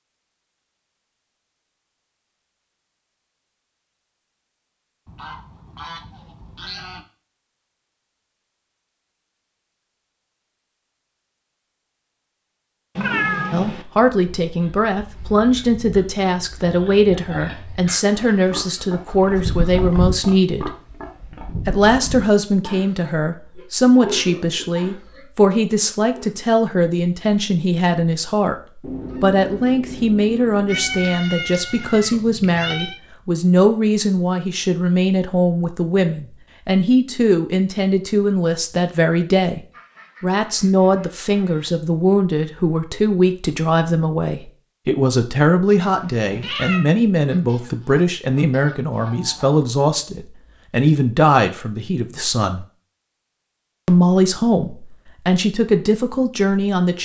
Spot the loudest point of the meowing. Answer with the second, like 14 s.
13 s.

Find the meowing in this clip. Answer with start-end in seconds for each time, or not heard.
12.9-13.8, 30.6-33.0, 45.8-46.9.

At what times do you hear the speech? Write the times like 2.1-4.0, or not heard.
13.5-20.7, 21.6-39.6, 40.2-52.6, 53.9-57.0.